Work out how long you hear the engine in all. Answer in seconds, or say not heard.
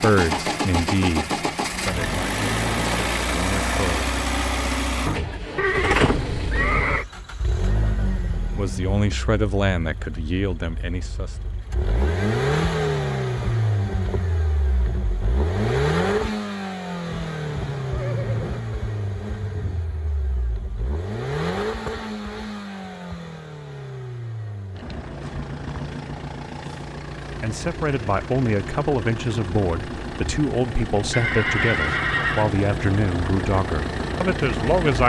35 s.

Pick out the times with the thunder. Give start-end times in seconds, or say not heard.
not heard.